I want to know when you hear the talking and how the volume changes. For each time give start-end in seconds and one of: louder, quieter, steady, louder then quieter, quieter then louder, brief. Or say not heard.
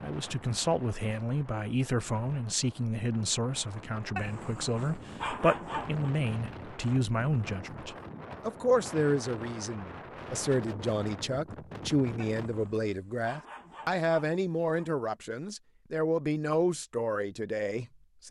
0.0-18.2 steady.